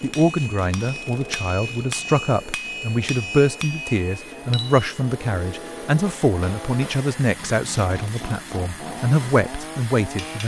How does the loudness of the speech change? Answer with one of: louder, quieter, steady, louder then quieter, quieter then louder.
steady.